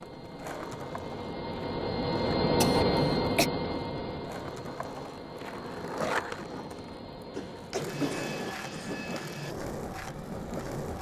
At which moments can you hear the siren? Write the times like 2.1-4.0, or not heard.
not heard.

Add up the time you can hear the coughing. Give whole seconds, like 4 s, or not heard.
3 s.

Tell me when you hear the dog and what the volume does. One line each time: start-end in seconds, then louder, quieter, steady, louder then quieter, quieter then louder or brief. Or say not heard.
not heard.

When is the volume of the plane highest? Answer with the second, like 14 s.
3 s.